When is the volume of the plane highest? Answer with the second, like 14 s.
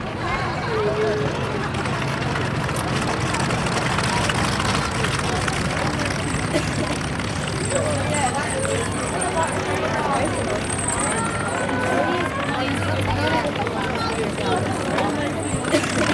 4 s.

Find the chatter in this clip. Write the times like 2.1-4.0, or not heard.
0.0-16.1.